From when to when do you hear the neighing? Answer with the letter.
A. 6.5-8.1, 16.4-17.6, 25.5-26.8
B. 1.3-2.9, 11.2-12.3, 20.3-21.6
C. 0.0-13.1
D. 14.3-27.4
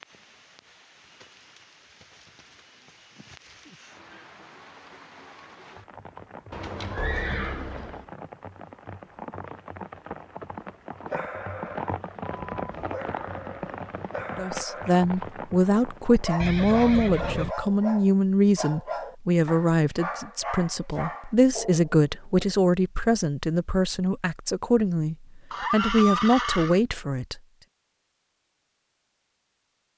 A.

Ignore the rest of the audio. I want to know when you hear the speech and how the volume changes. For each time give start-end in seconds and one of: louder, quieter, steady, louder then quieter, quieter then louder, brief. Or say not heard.
14.3-27.4 steady.